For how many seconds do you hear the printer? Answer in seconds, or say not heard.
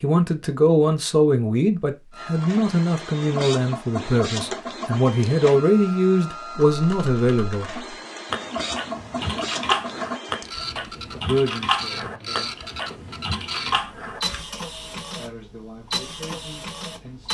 15 s.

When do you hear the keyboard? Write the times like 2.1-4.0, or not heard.
6.7-14.4.